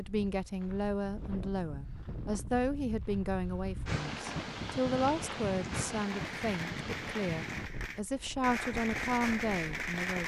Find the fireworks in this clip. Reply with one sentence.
The fireworks can be heard from 6.1 to 10.2 s.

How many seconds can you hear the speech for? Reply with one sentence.
The speech can be heard for 10 seconds in total.